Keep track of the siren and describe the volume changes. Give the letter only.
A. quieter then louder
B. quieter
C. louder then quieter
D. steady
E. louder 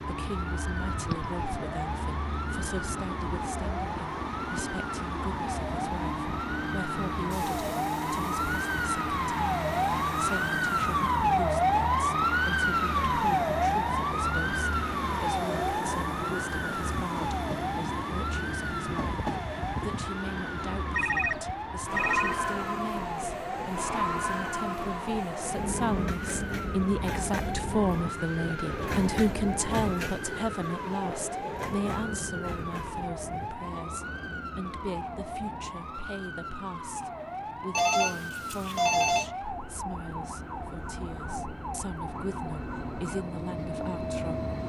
C.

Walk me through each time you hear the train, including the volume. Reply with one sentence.
The train can be heard from 0.0 to 44.6 s, getting quieter.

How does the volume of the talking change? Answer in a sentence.
The volume of the talking goes up, then down.